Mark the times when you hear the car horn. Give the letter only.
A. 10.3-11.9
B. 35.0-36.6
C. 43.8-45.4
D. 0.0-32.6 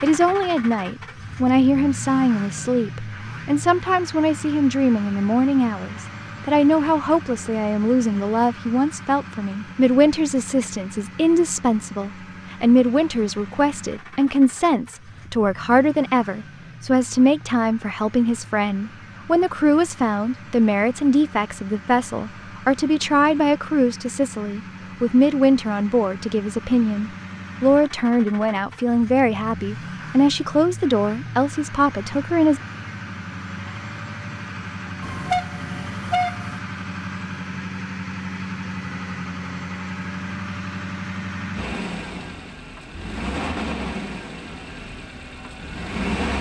B.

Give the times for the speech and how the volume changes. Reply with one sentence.
You can hear the speech from 0.0 to 32.6 s, at a steady volume.